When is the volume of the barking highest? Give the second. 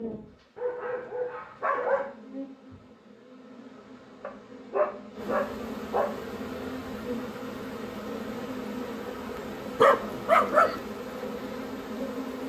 10 s.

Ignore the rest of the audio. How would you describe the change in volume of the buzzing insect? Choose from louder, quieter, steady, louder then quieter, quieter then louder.
louder.